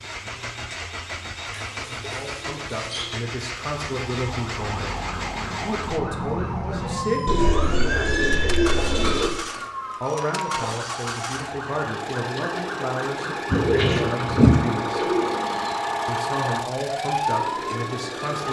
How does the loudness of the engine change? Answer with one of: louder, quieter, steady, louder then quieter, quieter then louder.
steady.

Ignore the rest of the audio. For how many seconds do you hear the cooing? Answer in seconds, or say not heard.
6 s.